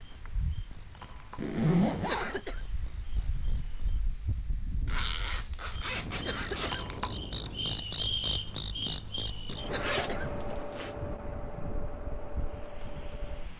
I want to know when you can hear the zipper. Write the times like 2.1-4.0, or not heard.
1.4-2.4, 4.8-6.8, 9.5-10.9.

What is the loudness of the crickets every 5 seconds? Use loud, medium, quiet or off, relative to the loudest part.
quiet, loud, medium.